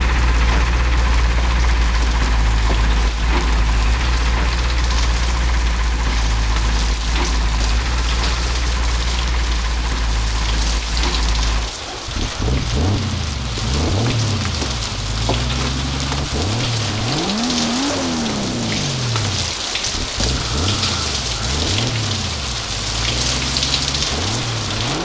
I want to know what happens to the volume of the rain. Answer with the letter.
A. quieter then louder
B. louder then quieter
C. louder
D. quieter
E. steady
C.